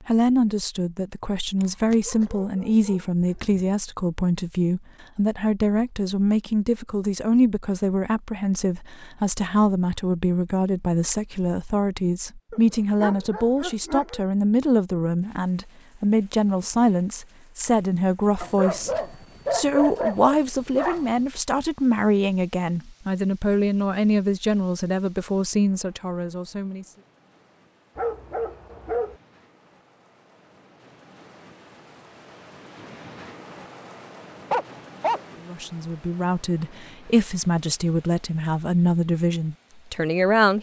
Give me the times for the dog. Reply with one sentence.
You can hear the dog from 1.6 to 3.6 s, from 12.5 to 14.2 s, from 18.4 to 21.2 s, from 27.9 to 29.1 s and from 34.5 to 35.4 s.